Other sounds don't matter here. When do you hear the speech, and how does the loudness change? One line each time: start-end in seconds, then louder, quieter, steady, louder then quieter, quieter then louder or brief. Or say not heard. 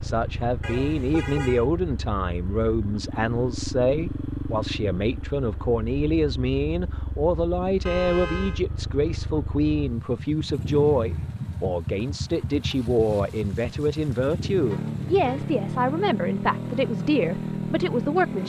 0.0-18.4 steady.